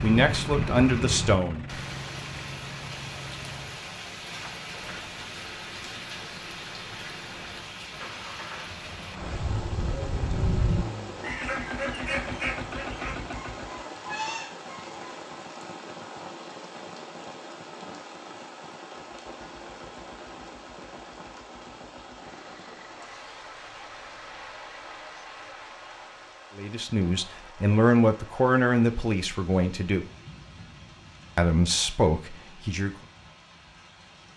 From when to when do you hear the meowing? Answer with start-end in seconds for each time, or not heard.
not heard.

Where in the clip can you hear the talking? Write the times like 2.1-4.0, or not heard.
0.0-1.6, 26.6-30.1, 31.4-32.9.